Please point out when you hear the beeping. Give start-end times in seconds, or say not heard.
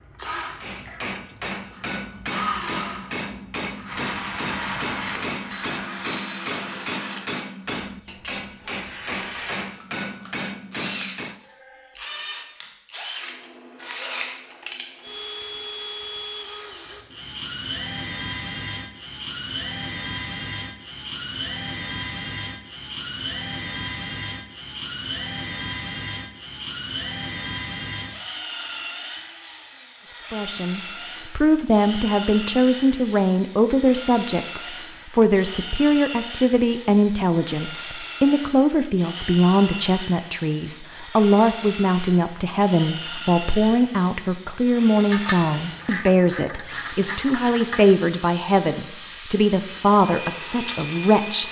not heard.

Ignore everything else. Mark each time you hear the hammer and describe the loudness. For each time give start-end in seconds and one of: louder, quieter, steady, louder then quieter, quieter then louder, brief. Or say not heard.
0.6-11.4 steady.